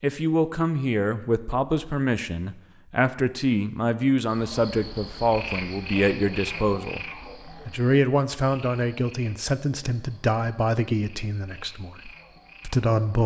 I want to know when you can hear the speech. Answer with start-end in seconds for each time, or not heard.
0.0-7.0, 7.7-13.2.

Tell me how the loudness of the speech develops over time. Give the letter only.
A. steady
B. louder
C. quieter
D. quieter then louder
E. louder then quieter
A.